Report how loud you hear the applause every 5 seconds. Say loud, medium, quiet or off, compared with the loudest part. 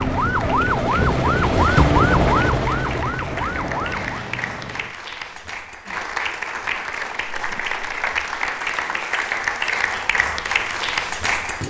medium, loud, loud.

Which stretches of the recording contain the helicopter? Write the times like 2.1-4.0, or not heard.
0.0-5.0.